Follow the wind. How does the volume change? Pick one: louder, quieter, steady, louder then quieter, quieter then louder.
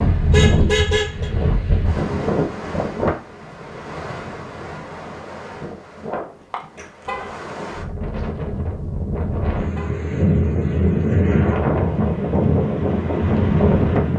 quieter then louder.